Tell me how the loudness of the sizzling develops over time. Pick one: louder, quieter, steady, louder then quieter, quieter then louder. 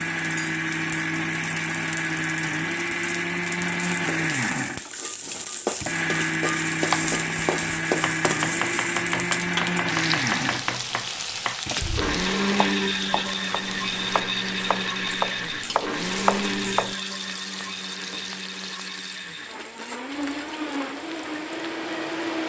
louder then quieter.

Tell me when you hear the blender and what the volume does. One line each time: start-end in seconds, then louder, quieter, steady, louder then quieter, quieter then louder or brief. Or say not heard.
0.0-22.4 quieter.